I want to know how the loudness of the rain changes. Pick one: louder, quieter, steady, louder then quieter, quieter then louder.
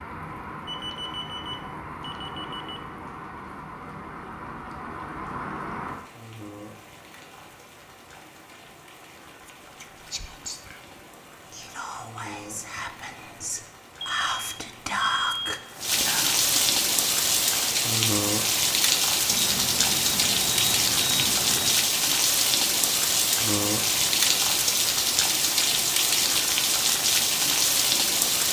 quieter then louder.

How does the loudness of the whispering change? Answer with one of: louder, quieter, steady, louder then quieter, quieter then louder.
louder.